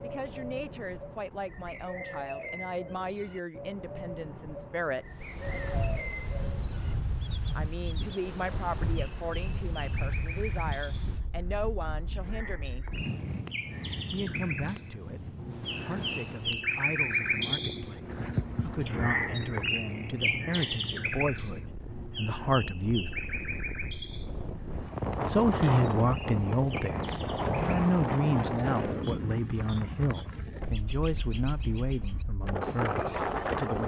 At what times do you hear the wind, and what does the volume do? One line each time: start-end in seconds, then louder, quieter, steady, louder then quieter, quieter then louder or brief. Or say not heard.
5.2-33.8 quieter then louder.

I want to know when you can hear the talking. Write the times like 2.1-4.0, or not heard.
0.0-5.1, 7.5-12.8, 14.1-23.1, 25.2-33.8.